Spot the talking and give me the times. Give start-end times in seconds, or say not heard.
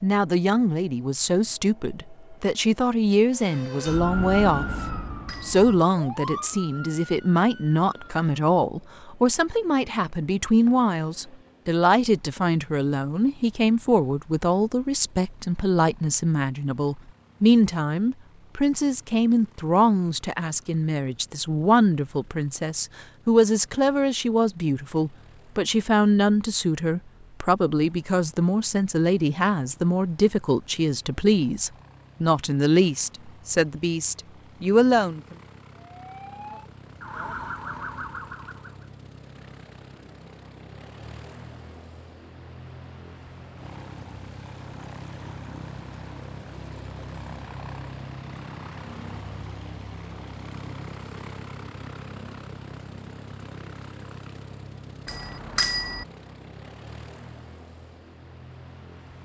0.0-35.2.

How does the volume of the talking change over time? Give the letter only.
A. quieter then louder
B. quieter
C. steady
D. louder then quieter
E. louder
C.